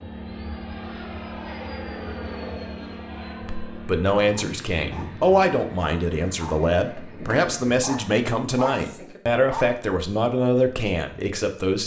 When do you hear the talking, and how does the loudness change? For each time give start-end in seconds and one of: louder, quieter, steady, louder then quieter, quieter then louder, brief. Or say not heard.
3.4-11.8 steady.